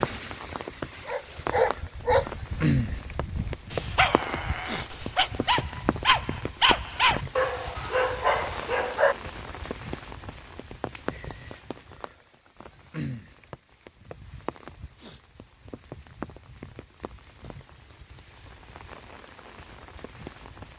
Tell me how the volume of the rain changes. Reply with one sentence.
The volume of the rain goes down.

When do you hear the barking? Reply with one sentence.
You can hear the barking from 1.1 to 9.2 s.